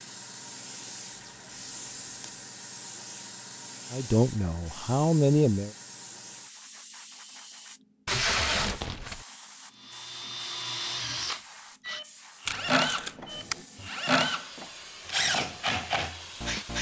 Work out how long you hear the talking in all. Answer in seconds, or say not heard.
2 s.